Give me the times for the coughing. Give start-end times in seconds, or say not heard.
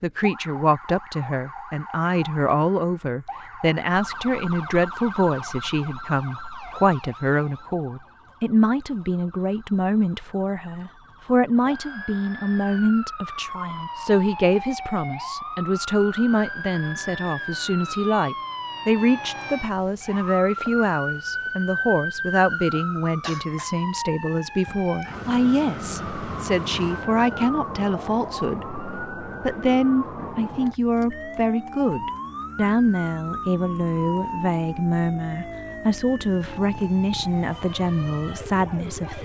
23.2-23.7.